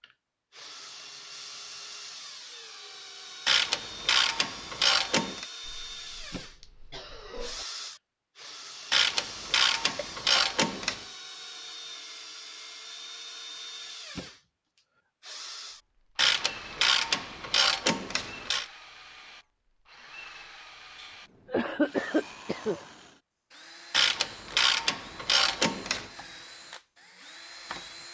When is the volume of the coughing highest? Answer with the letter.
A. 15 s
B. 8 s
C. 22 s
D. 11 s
C.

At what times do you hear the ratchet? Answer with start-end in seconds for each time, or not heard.
3.5-5.5, 8.9-11.1, 16.1-18.6, 23.9-26.1.